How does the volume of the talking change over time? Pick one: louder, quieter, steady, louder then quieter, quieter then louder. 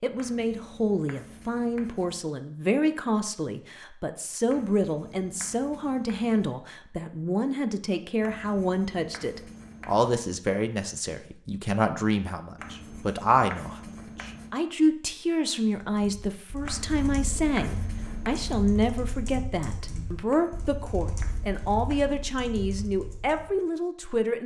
steady.